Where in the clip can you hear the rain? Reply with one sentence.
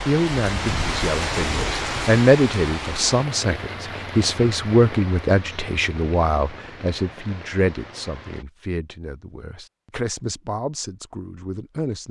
The rain can be heard from 0.0 to 8.4 s.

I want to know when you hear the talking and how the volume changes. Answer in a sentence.
You can hear the talking from 0.1 to 12.0 s, getting quieter.